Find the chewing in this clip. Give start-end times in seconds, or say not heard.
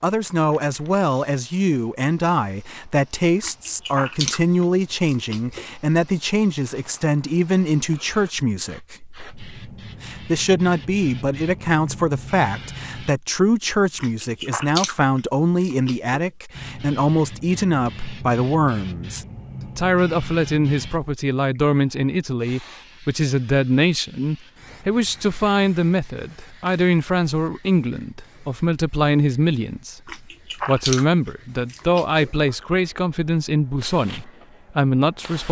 3.4-5.7, 13.9-16.1, 30.1-32.3.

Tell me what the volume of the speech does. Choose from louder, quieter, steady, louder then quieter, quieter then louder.
steady.